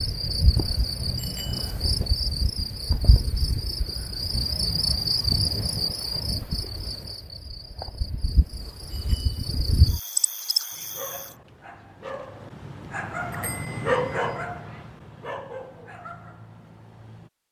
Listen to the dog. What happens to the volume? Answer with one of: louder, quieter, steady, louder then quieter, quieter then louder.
louder then quieter.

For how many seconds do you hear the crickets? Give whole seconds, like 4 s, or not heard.
11 s.